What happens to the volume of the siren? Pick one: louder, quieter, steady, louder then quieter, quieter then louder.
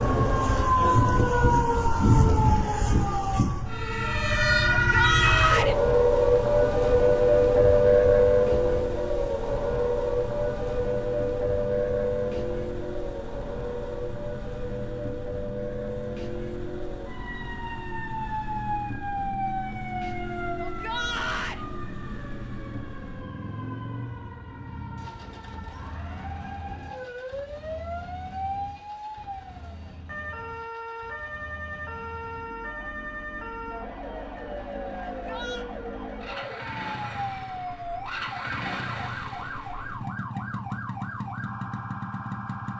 quieter.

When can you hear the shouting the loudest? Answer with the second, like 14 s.
5 s.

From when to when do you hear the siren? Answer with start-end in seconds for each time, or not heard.
0.0-42.7.